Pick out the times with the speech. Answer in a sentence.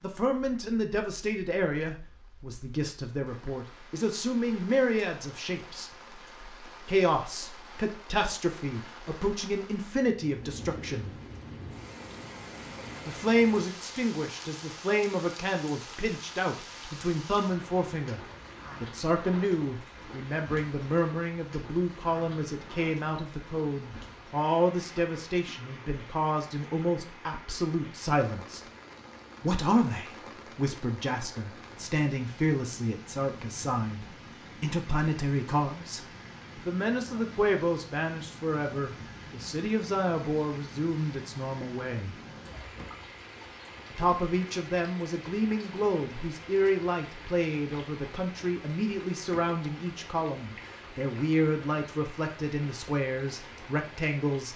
The speech can be heard from 0.0 to 5.9 s, from 6.8 to 11.2 s, from 13.1 to 18.2 s, from 18.8 to 28.6 s, from 29.4 to 42.1 s and from 43.9 to 54.5 s.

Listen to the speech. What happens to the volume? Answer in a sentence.
The volume of the speech stays about the same.